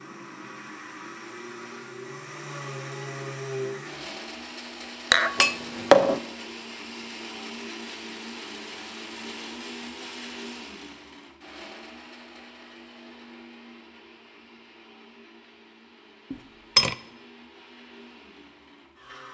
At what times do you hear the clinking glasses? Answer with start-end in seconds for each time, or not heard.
5.1-6.2, 16.3-16.9.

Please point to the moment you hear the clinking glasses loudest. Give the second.
6 s.